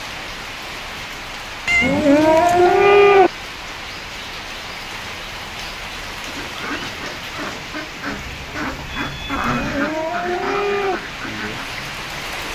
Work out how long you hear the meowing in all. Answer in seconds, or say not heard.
3 s.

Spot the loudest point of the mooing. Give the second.
3 s.